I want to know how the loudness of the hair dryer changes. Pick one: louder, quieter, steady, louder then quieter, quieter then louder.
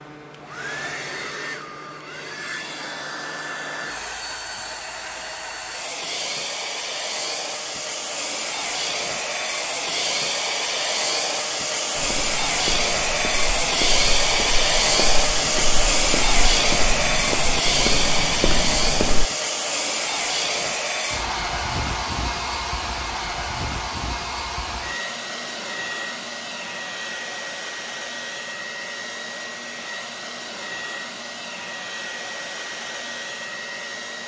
louder then quieter.